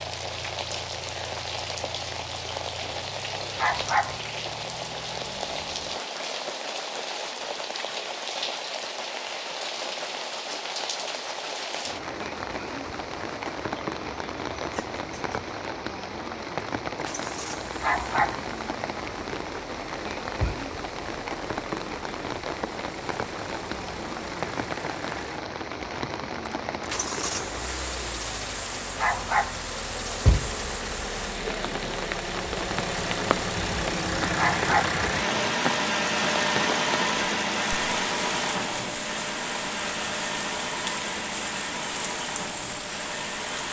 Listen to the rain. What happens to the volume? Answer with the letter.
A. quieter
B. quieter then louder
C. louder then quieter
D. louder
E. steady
E.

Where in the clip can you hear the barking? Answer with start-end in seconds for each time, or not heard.
3.5-4.2, 17.8-18.4, 28.9-29.6, 34.4-35.0.